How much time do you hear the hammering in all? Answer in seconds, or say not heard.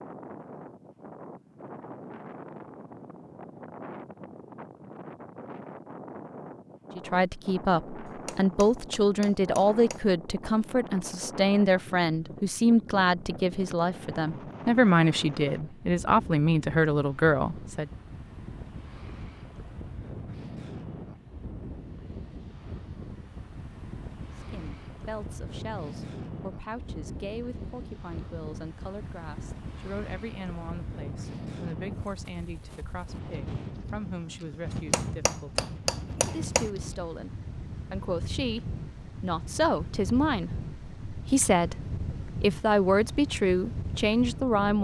4 s.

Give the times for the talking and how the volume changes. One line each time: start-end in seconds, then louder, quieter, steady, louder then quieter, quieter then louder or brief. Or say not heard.
7.0-17.9 steady
24.5-44.7 louder.